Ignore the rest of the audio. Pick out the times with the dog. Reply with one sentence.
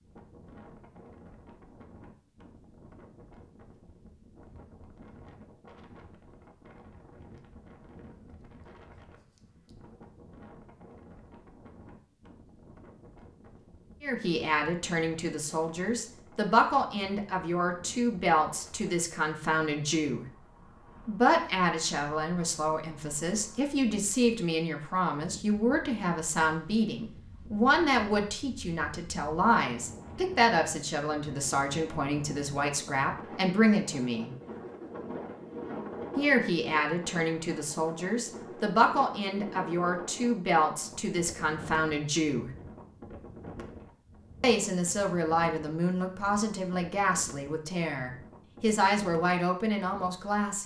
The dog can't be heard in this clip.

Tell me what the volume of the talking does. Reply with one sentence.
The loudness of the talking stays about the same.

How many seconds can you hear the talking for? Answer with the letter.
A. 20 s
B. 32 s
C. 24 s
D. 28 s
B.